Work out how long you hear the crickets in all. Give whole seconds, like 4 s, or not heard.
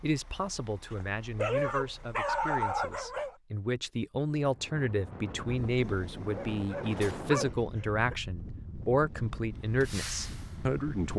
not heard.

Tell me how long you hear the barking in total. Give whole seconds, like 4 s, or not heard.
4 s.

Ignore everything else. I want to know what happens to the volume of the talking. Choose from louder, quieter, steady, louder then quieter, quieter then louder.
louder.